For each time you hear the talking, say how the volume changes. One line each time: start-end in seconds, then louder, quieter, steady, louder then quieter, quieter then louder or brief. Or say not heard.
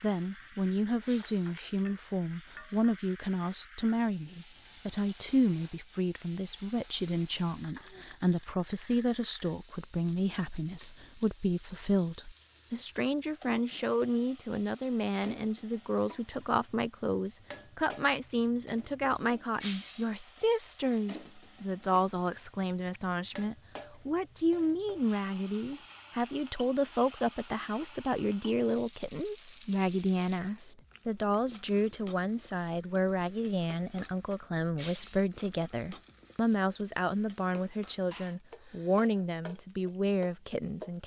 0.0-41.0 steady.